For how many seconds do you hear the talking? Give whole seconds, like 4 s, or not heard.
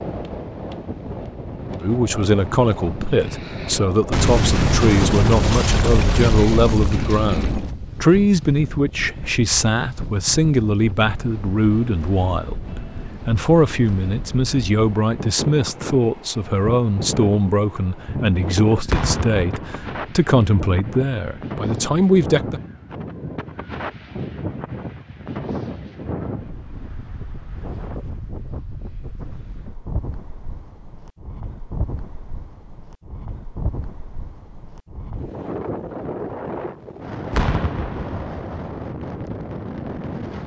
21 s.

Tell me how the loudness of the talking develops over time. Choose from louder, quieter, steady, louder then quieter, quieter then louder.
steady.